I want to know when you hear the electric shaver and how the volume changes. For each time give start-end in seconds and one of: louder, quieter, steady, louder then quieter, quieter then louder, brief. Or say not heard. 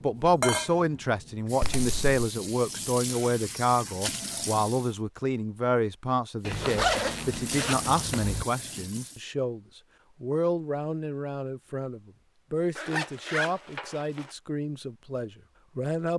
not heard.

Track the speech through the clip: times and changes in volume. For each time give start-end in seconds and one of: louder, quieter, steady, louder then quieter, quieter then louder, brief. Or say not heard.
0.0-16.1 quieter.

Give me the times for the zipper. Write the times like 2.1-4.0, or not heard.
1.6-2.2, 6.4-8.4, 12.8-14.3.